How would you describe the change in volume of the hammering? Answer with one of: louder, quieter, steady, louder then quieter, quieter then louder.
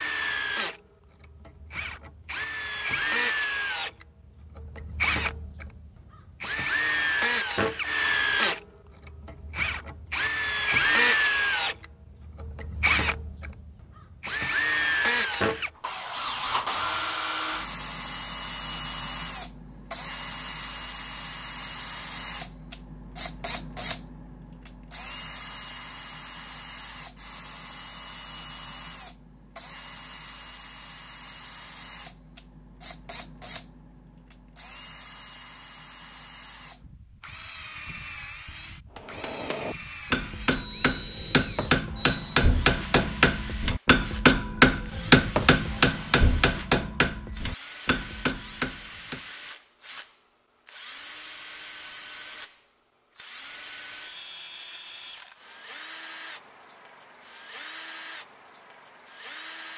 louder then quieter.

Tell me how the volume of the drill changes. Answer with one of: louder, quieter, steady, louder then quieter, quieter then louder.
quieter.